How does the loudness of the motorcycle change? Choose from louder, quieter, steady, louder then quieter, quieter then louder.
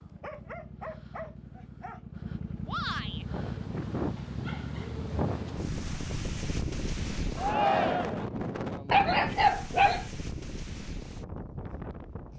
louder.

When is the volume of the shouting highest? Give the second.
8 s.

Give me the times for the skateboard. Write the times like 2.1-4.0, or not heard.
not heard.